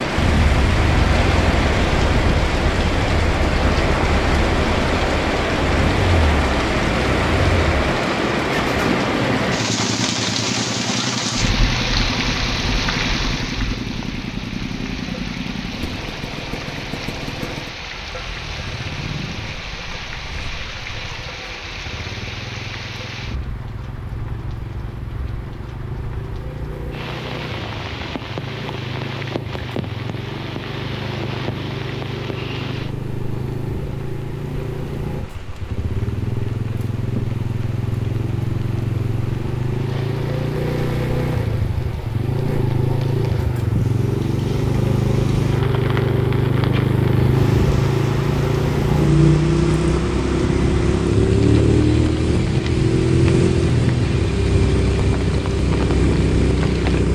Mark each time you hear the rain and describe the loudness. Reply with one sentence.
You can hear the rain from 0.0 to 57.1 s, getting quieter then louder.